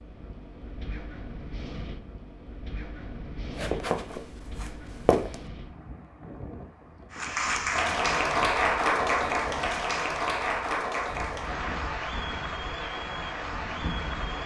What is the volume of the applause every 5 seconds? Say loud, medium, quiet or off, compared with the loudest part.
off, loud, medium.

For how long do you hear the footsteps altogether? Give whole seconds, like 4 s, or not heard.
2 s.